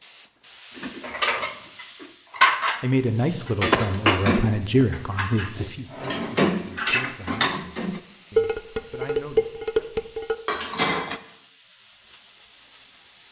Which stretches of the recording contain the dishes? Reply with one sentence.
The dishes can be heard from 0.8 to 11.2 s.